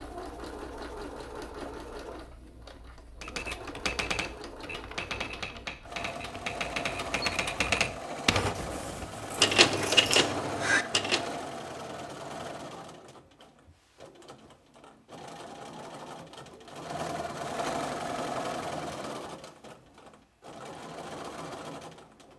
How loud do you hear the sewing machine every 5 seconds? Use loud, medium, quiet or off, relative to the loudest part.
medium, loud, loud, loud, medium.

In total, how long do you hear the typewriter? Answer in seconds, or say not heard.
8 s.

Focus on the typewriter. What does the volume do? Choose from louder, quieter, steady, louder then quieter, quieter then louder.
louder.